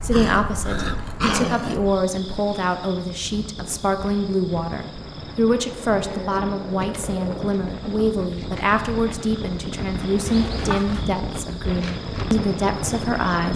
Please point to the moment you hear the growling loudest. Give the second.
1 s.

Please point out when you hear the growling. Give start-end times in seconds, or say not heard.
0.1-1.8, 5.5-7.5, 10.2-11.1.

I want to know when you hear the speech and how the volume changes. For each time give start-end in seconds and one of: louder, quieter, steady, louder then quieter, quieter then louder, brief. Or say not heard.
0.0-13.5 steady.